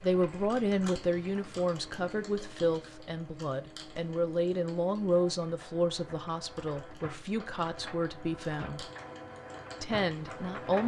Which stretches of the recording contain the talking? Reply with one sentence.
The talking can be heard from 0.0 to 8.8 s and from 9.8 to 10.8 s.